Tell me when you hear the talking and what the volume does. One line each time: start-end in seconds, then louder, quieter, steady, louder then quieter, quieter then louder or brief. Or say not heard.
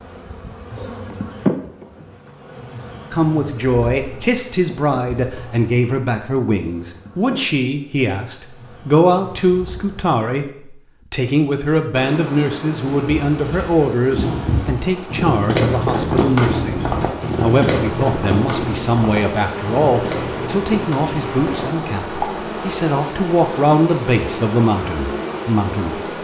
3.1-26.0 steady.